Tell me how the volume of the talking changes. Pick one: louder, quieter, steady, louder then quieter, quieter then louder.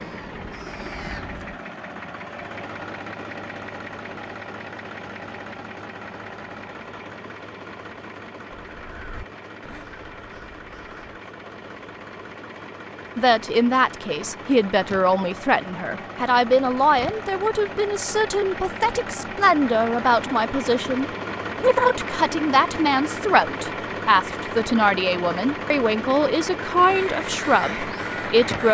steady.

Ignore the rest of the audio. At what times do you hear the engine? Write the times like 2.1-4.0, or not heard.
0.0-28.6.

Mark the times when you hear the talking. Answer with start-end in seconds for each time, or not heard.
13.2-28.6.